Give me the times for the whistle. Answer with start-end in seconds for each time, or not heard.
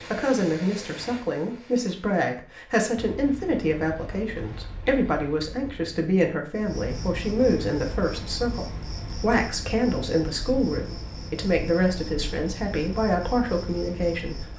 not heard.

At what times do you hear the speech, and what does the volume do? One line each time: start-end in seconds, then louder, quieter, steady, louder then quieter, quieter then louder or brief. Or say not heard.
0.1-14.5 steady.